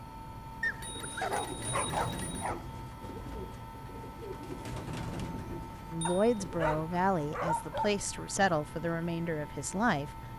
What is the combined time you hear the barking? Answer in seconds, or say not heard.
4 s.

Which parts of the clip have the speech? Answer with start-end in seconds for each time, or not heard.
5.9-10.2.